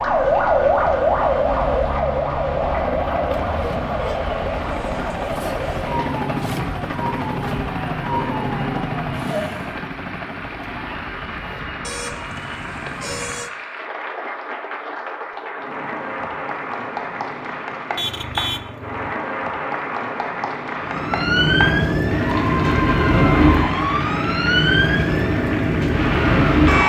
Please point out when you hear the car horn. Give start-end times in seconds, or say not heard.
3.3-4.2, 11.8-13.5, 17.9-19.0.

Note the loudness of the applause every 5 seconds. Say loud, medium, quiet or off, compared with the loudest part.
quiet, medium, medium, loud, loud, loud.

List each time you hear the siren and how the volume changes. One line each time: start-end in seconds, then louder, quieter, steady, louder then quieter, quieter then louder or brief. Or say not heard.
0.0-9.8 quieter
20.8-26.8 steady.